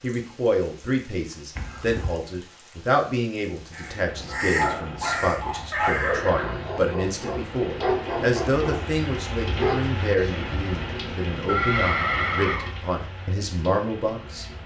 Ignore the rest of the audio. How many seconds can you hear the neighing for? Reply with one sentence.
The neighing can be heard for 3 seconds in total.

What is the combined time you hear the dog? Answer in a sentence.
The dog can be heard for 5 seconds in total.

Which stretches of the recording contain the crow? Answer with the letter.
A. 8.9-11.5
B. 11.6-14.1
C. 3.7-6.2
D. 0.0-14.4
C.